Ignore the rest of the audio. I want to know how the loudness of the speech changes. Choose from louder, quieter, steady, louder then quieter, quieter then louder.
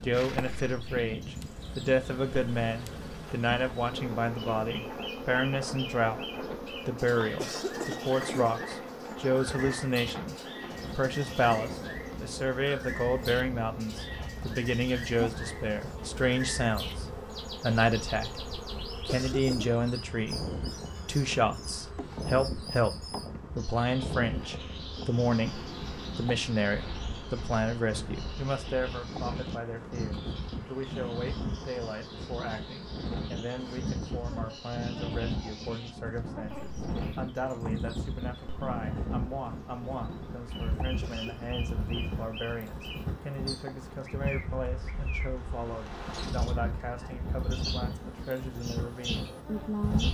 quieter.